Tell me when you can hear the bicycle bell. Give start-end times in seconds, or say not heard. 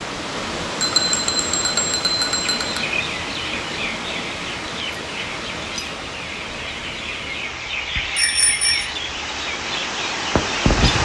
0.8-2.8, 8.2-8.8.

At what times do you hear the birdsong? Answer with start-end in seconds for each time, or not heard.
2.4-11.0.